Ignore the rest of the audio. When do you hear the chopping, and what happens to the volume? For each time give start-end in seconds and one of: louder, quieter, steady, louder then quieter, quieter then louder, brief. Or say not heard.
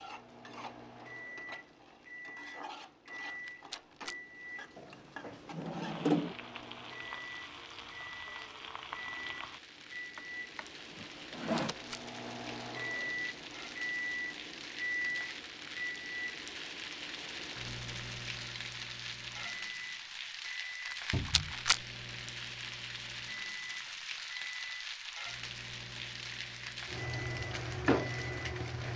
not heard.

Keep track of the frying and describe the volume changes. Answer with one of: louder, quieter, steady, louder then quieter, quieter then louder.
louder.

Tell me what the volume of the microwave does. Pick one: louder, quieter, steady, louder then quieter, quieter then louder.
louder then quieter.